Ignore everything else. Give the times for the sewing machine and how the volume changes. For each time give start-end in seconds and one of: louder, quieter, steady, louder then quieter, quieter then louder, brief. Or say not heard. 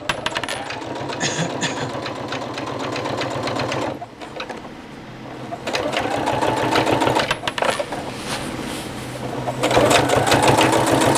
0.0-11.1 louder.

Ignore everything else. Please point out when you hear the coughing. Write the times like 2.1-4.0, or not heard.
1.2-1.9.